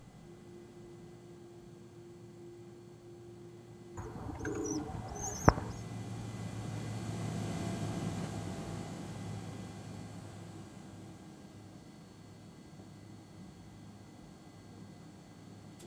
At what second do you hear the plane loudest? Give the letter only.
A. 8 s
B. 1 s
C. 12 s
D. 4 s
A.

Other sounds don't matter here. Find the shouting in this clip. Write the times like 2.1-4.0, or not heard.
not heard.